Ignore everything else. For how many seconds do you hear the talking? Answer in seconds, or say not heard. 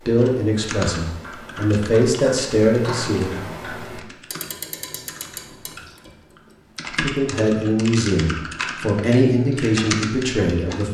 7 s.